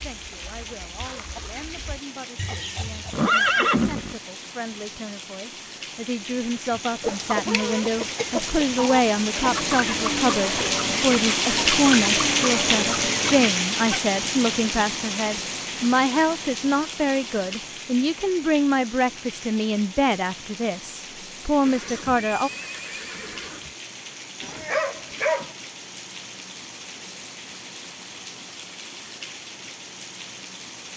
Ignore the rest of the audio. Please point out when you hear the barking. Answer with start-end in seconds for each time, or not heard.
24.4-25.5.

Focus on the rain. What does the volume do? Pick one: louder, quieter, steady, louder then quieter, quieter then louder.
louder then quieter.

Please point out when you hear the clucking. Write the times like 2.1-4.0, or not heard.
0.2-3.3, 6.7-14.0.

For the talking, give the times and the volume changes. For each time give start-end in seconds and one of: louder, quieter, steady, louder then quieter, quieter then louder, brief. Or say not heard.
0.0-22.5 louder.